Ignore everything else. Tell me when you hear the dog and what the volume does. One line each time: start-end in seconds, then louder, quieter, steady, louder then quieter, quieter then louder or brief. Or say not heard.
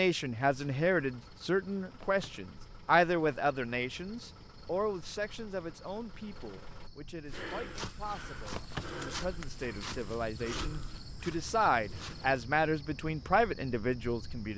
not heard.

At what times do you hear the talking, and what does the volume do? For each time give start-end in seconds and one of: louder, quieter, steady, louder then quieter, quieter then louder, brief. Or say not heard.
0.0-14.5 quieter then louder.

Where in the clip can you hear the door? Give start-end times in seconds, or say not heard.
1.9-2.5, 8.4-9.1.